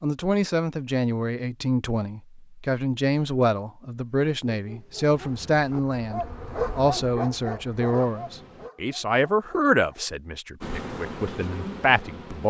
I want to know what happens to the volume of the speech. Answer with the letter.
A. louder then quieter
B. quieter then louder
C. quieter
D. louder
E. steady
E.